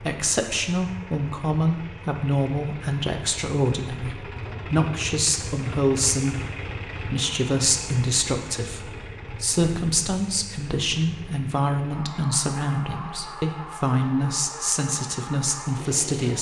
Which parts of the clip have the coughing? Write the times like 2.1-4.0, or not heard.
not heard.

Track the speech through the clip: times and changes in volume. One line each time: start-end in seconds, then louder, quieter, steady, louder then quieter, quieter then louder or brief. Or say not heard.
0.0-16.3 steady.